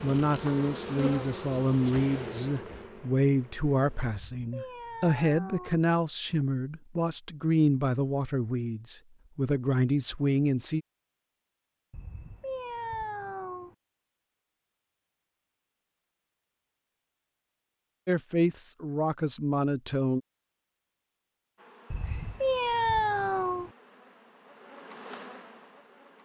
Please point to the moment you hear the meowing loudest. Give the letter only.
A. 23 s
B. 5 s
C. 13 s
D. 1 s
A.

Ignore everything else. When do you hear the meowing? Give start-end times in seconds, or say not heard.
4.0-5.8, 11.9-13.8, 21.9-23.7.